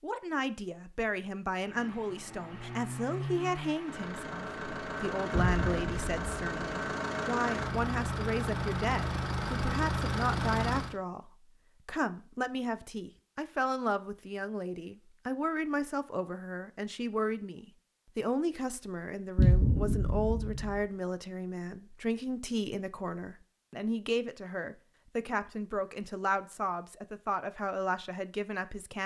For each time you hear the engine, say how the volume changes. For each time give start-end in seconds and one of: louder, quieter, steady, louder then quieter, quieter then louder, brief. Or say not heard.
1.6-10.9 louder.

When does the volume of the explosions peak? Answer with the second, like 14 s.
20 s.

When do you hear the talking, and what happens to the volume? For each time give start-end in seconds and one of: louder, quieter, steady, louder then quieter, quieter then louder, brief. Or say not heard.
0.0-29.0 steady.